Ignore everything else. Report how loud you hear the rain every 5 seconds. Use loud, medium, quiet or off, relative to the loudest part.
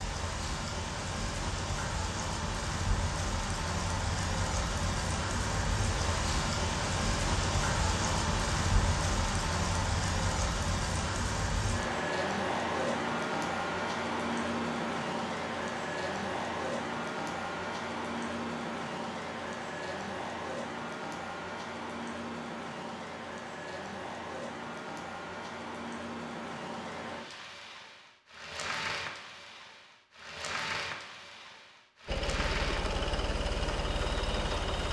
loud, loud, loud, loud, medium, medium, medium.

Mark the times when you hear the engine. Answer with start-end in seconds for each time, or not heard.
32.0-34.8.